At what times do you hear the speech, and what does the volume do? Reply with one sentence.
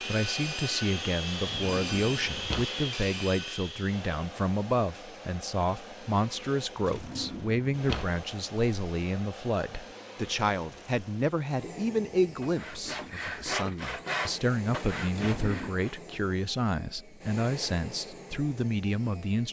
You can hear the speech from 0.1 to 19.4 s, at a steady volume.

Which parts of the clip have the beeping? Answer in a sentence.
The beeping can't be heard in this clip.